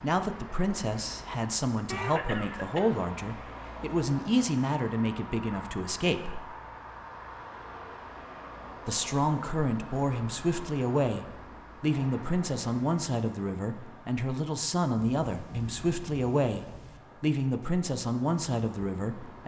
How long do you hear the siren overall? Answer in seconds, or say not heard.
not heard.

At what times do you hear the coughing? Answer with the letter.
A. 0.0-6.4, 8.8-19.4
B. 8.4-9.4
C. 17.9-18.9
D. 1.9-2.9
D.